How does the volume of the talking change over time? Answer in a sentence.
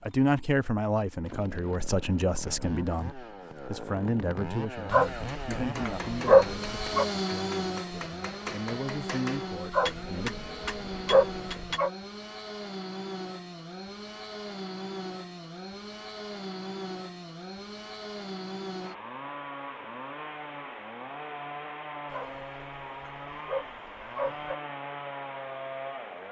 The loudness of the talking goes down, then up.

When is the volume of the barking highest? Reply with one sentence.
The loudest moment of the barking is at 6 seconds.